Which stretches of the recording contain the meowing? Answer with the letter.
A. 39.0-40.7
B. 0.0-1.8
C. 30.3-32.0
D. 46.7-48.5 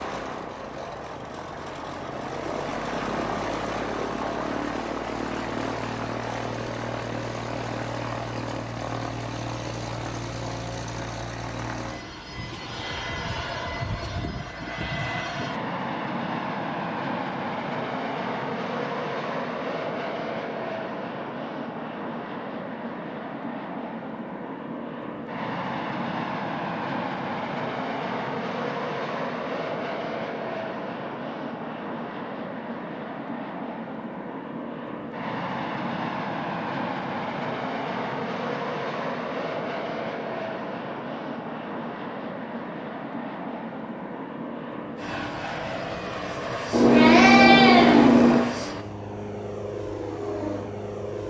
D.